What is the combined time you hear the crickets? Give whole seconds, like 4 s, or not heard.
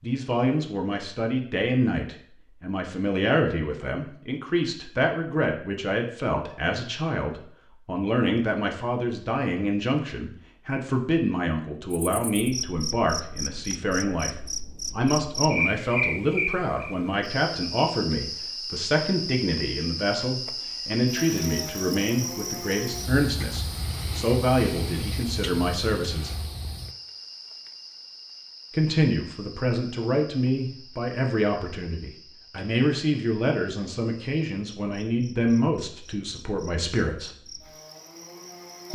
27 s.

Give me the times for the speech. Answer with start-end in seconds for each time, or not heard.
0.0-14.3, 14.9-26.4, 28.7-37.3.